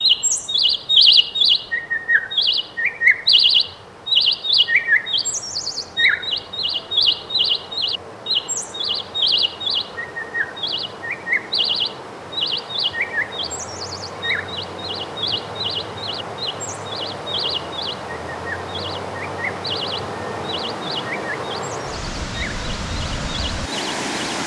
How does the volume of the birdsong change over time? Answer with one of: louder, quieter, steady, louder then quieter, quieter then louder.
quieter.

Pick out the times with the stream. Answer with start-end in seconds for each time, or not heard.
0.0-24.4.